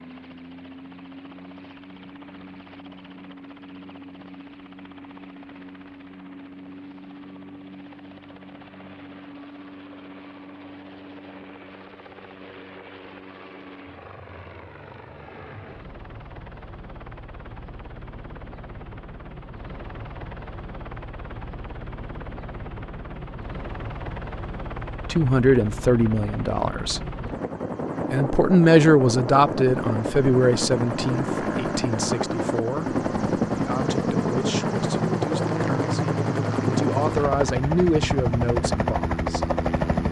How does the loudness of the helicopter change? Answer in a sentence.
The volume of the helicopter goes up.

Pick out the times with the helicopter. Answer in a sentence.
You can hear the helicopter from 0.0 to 40.0 s.